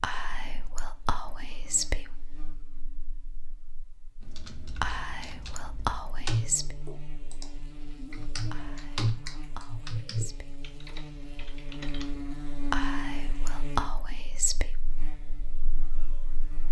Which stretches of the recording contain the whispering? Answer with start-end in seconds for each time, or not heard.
0.0-2.1, 4.8-6.8, 8.5-10.6, 12.7-14.8.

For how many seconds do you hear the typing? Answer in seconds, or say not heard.
8 s.